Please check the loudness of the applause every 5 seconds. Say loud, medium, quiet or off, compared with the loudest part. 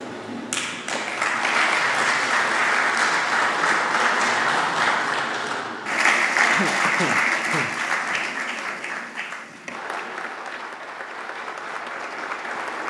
loud, loud, medium.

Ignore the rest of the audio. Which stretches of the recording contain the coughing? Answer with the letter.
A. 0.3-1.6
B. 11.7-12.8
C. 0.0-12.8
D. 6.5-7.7
D.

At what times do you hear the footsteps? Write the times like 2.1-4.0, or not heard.
not heard.